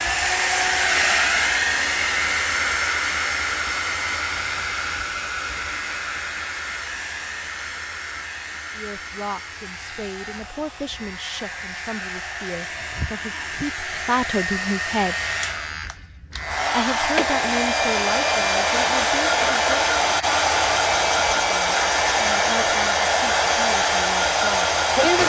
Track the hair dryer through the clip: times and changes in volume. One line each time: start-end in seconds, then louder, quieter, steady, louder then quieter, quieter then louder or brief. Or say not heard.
0.0-25.2 quieter then louder.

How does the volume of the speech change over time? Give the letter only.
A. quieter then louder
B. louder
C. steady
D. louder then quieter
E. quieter
D.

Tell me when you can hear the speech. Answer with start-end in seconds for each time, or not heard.
8.7-15.2, 16.7-19.9, 21.4-24.7.